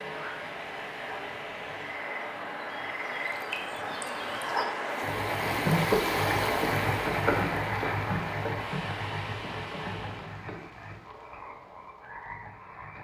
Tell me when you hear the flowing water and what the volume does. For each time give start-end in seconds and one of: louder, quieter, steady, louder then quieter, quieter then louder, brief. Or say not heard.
0.0-10.4 louder then quieter.